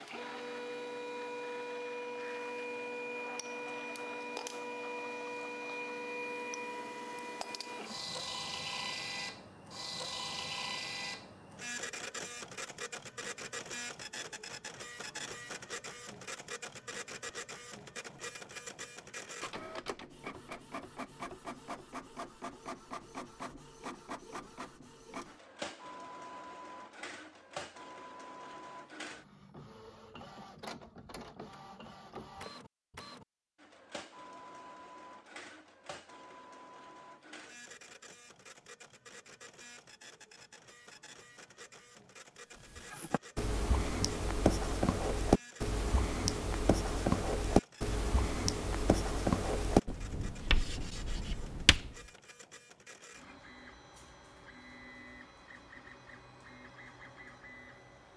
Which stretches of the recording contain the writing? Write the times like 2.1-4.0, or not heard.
42.8-52.0.